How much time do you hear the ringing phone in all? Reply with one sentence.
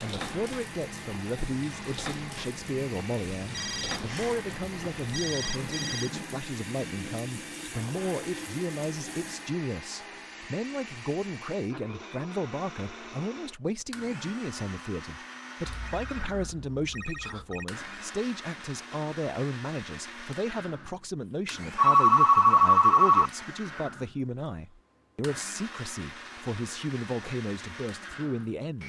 The ringing phone can be heard for 6 seconds in total.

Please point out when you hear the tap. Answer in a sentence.
The tap can be heard from 0.0 to 9.6 s.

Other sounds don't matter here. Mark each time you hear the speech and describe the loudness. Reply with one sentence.
The speech can be heard from 0.0 to 28.8 s, at a steady volume.